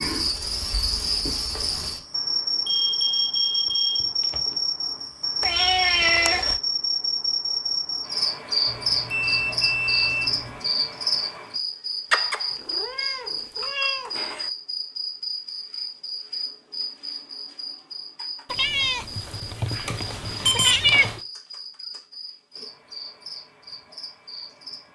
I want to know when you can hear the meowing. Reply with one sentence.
The meowing can be heard from 5.4 to 6.6 s, from 12.1 to 14.5 s and from 18.5 to 21.2 s.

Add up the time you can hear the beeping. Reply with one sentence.
You can hear the beeping for 5 seconds altogether.